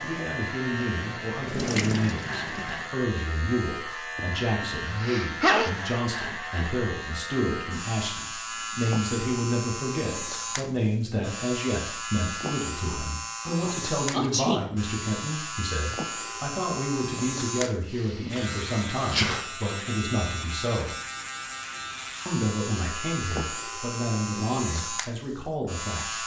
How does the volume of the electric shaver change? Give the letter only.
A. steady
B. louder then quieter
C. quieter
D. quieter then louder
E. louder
A.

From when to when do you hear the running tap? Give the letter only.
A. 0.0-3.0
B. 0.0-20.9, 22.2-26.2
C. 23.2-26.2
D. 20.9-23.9
A.